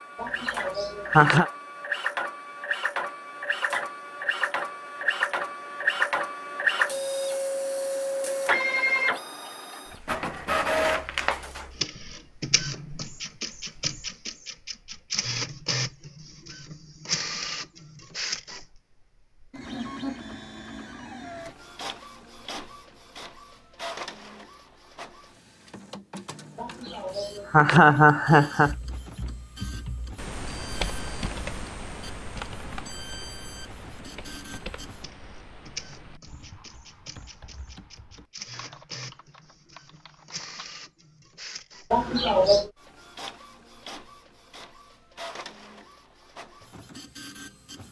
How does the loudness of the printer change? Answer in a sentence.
The volume of the printer goes down.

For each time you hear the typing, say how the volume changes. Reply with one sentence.
You can hear the typing from 28.6 to 40.7 s, getting quieter.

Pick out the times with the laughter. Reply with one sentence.
You can hear the laughter from 0.2 to 1.4 s, from 26.6 to 28.8 s and from 41.9 to 42.7 s.